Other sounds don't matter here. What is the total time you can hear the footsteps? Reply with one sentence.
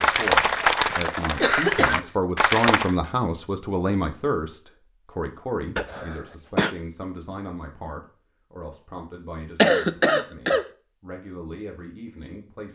You can't hear the footsteps here.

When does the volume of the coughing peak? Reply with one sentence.
The loudest moment of the coughing is at 10 seconds.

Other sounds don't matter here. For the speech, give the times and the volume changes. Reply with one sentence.
You can hear the speech from 0.0 to 12.7 s, getting quieter.